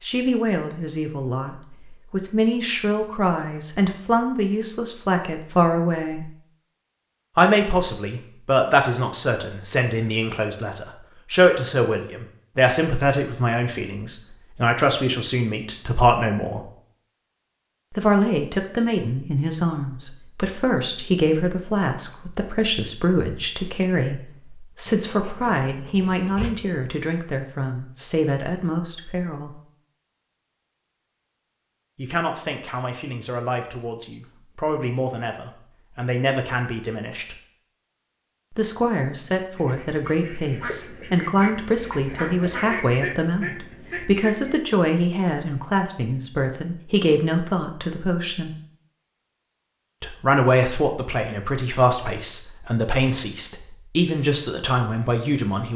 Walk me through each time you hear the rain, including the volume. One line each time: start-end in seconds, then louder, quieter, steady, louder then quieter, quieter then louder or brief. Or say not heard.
not heard.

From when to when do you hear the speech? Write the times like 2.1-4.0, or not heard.
0.0-6.3, 7.3-16.7, 17.9-29.6, 31.9-37.4, 38.5-48.5, 50.0-55.7.